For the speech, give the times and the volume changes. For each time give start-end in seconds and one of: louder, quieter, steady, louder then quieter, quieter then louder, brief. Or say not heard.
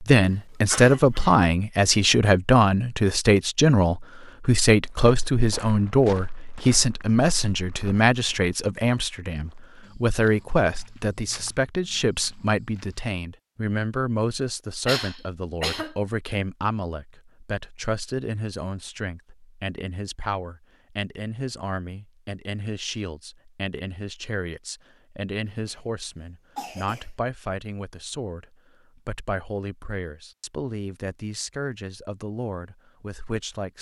0.0-33.7 quieter.